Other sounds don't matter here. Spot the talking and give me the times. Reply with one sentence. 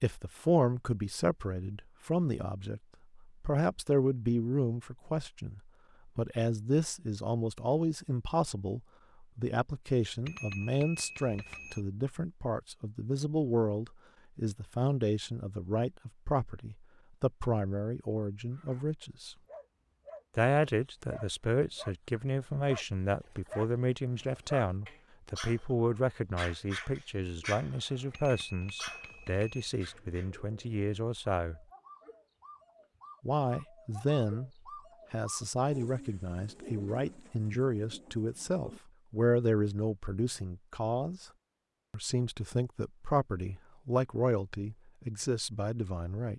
You can hear the talking from 0.0 to 19.4 s, from 20.4 to 31.6 s, from 33.2 to 34.5 s, from 35.1 to 41.3 s and from 41.9 to 46.3 s.